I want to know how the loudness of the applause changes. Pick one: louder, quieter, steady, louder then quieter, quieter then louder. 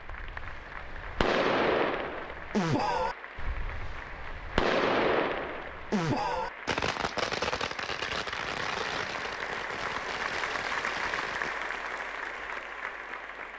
louder.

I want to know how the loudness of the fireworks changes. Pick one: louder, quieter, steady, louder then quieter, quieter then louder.
quieter.